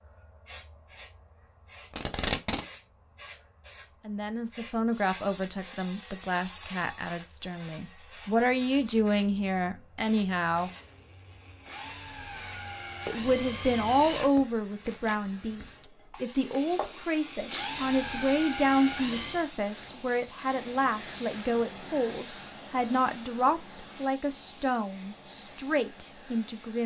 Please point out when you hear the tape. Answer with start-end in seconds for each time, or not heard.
1.9-2.6.